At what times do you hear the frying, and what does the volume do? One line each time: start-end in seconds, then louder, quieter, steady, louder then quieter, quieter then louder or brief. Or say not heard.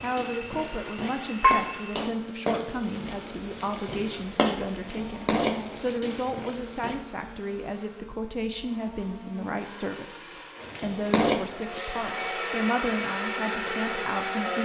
0.0-7.0 quieter then louder
10.6-12.2 brief.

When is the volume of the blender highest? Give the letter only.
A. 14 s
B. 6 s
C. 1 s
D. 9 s
A.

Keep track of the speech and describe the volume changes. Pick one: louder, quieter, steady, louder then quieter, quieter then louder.
steady.